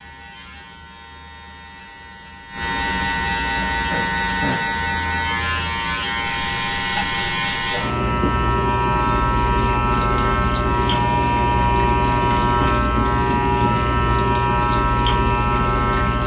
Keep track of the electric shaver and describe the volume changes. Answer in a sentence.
The loudness of the electric shaver goes up.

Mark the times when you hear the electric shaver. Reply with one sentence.
You can hear the electric shaver from 0.0 to 16.2 s.